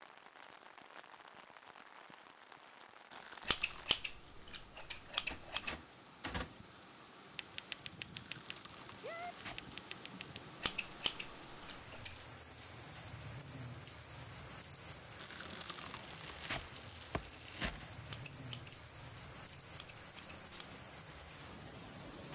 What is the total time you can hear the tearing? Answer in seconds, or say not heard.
5 s.